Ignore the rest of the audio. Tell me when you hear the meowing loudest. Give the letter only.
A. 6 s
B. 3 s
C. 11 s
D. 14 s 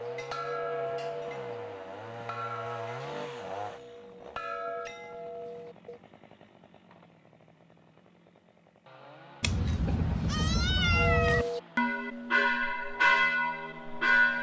C.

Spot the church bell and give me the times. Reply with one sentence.
The church bell can be heard from 0.0 to 6.0 s and from 10.9 to 14.3 s.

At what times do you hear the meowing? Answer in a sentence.
You can hear the meowing from 9.4 to 11.4 s.